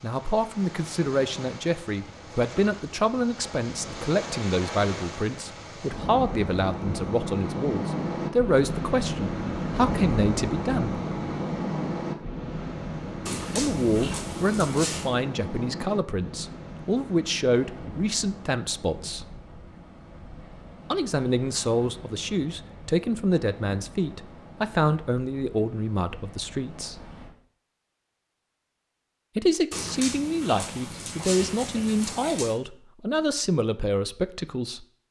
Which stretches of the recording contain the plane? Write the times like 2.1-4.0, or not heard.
not heard.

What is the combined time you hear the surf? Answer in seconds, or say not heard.
27 s.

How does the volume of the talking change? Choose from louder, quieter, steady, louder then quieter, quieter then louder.
steady.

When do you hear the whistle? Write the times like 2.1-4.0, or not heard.
not heard.